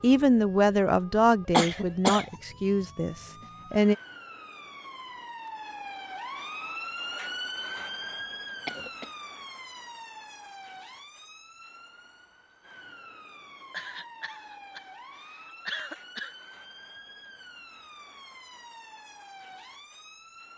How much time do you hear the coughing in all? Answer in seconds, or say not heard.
4 s.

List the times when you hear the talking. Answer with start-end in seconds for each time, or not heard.
0.0-4.0.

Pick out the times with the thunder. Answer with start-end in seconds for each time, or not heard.
not heard.